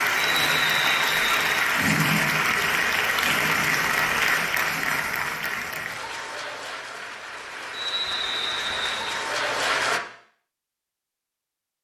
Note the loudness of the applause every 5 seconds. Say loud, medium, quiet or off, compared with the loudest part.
loud, medium, off.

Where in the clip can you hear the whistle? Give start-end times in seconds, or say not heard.
0.1-1.4, 7.7-9.2.